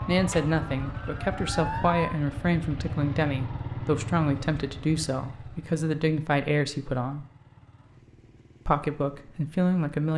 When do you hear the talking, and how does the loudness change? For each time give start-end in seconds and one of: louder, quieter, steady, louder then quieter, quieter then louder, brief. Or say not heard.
0.1-7.2 steady
8.7-10.1 brief.